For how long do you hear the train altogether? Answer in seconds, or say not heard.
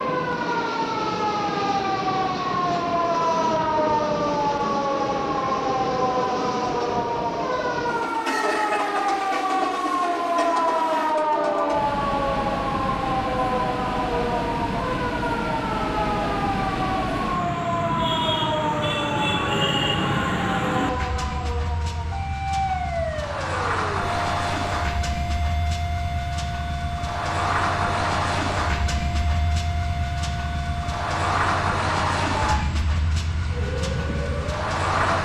35 s.